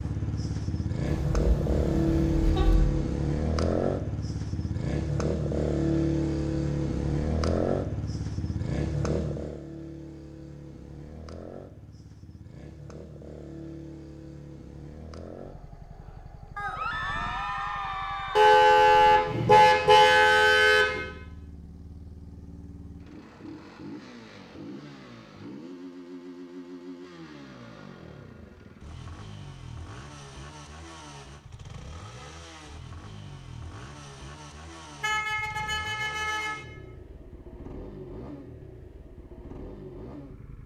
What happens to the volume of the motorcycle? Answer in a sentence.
The volume of the motorcycle goes down.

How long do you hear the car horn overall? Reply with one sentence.
The car horn can be heard for 6 seconds in total.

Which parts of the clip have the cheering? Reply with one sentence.
You can hear the cheering from 16.6 to 18.6 s.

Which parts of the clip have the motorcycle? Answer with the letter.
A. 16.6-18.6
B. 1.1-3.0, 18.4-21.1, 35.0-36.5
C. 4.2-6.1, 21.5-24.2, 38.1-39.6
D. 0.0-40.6
D.